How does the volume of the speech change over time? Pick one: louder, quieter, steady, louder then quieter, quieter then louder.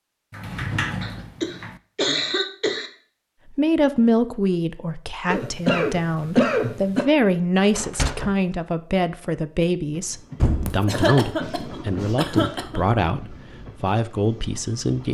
steady.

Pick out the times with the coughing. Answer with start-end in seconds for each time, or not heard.
1.0-2.9, 5.3-7.0, 10.7-12.8.